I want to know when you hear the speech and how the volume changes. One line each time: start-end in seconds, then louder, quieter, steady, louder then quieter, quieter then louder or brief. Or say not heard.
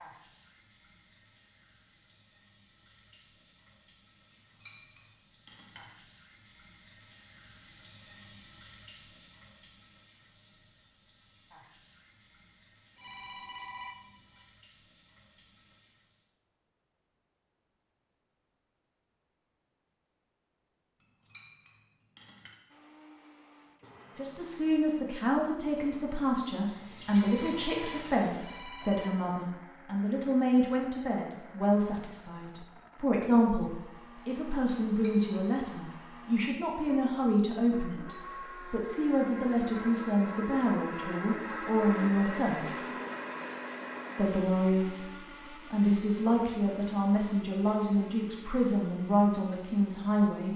24.1-42.8 steady
44.1-50.5 steady.